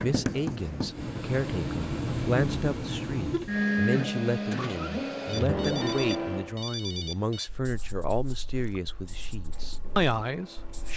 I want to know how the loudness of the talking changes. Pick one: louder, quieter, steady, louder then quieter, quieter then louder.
steady.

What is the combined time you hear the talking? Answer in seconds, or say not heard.
11 s.